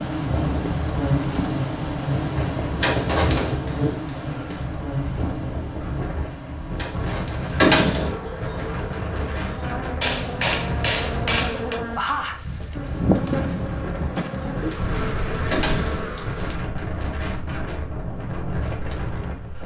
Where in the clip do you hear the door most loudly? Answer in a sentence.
The loudest moment of the door is at 8 seconds.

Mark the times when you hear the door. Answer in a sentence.
You can hear the door from 2.8 to 3.5 s, from 6.8 to 8.2 s and from 14.7 to 16.6 s.